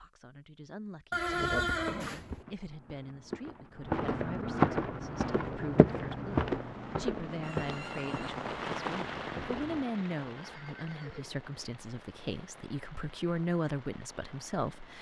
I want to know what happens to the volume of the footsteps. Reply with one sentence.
The loudness of the footsteps goes up, then down.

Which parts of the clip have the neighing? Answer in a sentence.
You can hear the neighing from 1.1 to 2.5 s, from 7.4 to 8.3 s and from 10.3 to 11.4 s.